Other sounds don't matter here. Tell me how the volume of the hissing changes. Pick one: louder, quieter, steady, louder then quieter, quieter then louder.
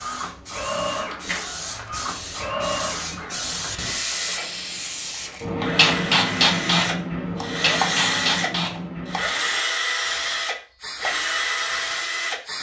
louder then quieter.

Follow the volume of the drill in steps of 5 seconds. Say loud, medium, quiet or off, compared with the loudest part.
medium, loud, loud.